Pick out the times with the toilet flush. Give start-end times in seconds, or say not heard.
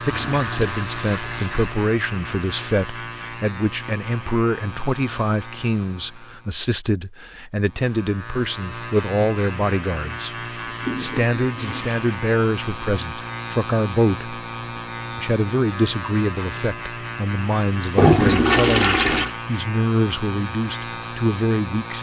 0.1-1.8, 10.6-11.9, 17.9-19.3.